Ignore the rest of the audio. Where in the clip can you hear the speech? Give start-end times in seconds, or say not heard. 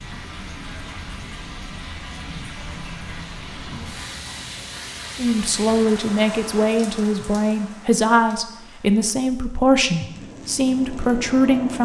5.2-11.8.